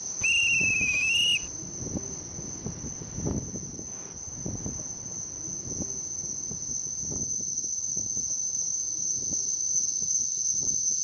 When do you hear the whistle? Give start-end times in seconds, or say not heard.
0.2-1.5.